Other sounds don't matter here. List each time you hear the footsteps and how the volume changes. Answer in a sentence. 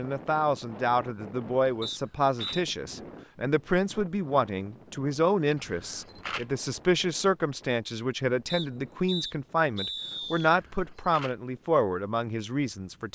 You can't hear the footsteps here.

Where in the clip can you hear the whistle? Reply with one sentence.
The whistle can be heard from 1.8 to 2.6 s and from 8.4 to 10.5 s.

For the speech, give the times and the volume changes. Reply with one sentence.
The speech can be heard from 0.0 to 13.0 s, at a steady volume.